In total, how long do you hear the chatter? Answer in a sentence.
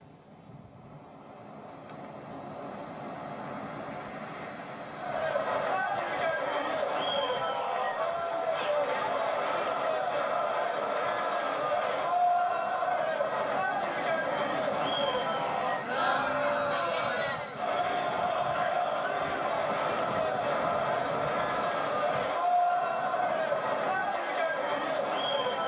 You can hear the chatter for 21 seconds altogether.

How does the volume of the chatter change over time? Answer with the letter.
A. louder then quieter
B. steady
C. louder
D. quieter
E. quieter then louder
B.